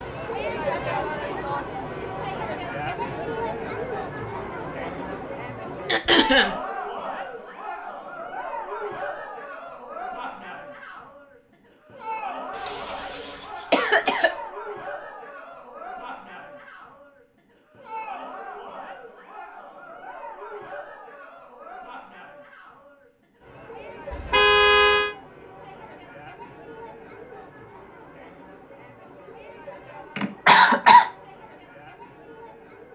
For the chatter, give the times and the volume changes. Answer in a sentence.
The chatter can be heard from 0.0 to 32.8 s, getting quieter.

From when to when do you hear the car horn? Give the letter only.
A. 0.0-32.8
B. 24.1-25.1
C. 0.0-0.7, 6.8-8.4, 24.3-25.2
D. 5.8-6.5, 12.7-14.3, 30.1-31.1
B.